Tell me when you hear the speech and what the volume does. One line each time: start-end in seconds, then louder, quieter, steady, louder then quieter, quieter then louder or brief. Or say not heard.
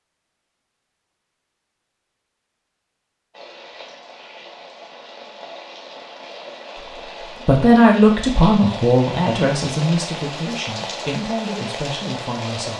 7.5-12.7 quieter.